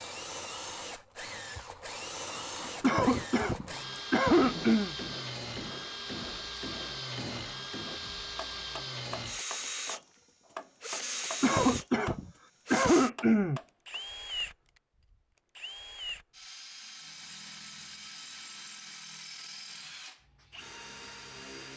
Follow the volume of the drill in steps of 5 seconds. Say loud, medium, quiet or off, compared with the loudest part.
loud, loud, loud, medium, medium.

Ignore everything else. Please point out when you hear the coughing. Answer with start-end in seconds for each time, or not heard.
2.8-5.0, 11.4-13.6.